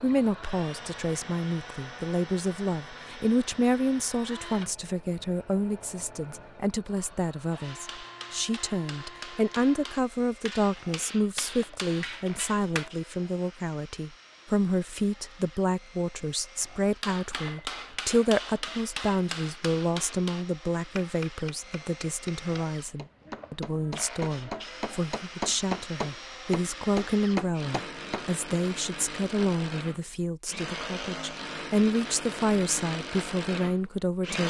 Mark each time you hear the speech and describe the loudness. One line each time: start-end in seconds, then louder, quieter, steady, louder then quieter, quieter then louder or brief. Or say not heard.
0.0-34.4 steady.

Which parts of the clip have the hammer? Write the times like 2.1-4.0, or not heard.
7.6-12.9, 17.0-28.3.